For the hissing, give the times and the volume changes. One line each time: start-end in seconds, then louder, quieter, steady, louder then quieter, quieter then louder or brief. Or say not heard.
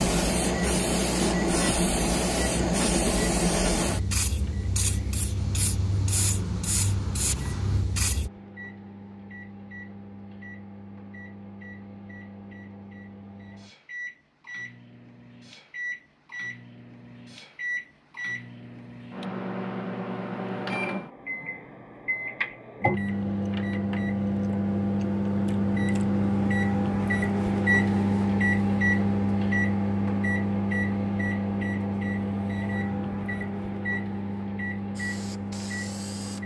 0.0-8.3 quieter
35.0-36.4 brief.